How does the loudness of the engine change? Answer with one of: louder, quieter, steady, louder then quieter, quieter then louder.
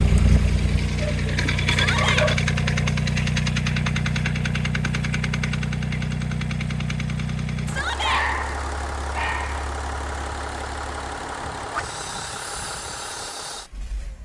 quieter.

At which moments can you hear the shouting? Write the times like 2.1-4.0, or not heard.
1.7-2.3, 7.7-8.2.